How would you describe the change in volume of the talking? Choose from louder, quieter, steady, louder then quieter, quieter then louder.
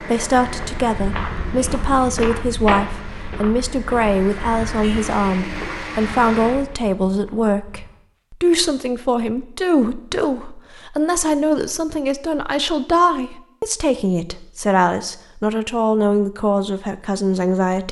steady.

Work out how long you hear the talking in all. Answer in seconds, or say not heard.
18 s.